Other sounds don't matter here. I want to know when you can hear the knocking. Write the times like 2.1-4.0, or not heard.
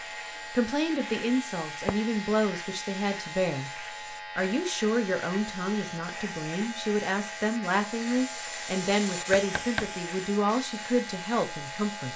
9.3-9.9.